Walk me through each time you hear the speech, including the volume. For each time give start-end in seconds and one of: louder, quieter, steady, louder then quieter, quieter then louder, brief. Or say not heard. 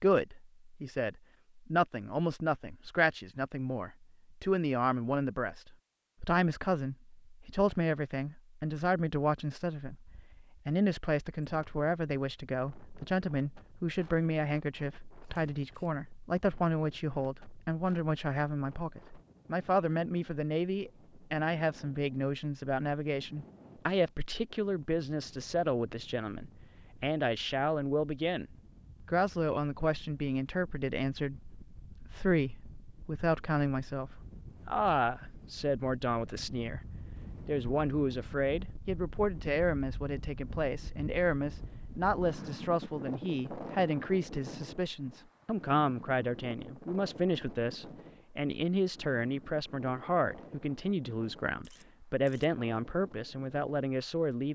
0.0-28.4 steady
29.1-54.4 steady.